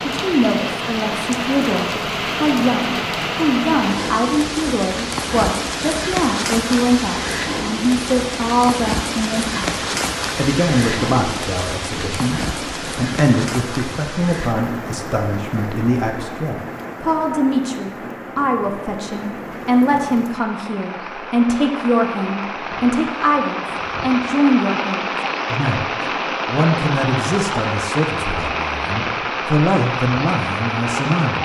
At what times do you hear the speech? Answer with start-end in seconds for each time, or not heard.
0.0-31.4.